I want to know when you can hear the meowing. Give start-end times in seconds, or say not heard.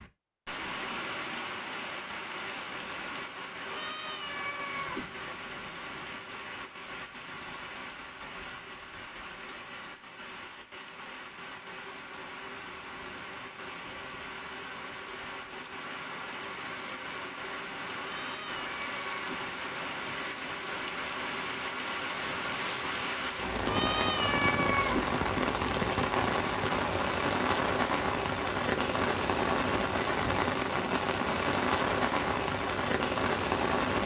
3.6-5.0, 18.0-19.4, 23.6-25.0.